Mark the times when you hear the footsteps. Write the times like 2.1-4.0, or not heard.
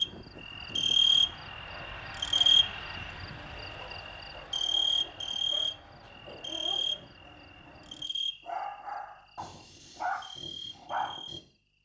not heard.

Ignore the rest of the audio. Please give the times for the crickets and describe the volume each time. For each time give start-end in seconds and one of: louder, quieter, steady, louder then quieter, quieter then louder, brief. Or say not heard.
0.0-11.4 quieter.